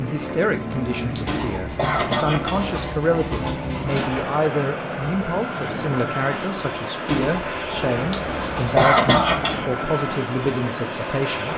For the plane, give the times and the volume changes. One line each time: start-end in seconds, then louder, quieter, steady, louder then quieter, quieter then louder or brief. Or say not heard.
0.0-11.5 steady.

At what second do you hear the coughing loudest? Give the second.
9 s.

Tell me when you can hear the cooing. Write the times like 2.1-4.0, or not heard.
1.2-4.2, 7.0-9.7.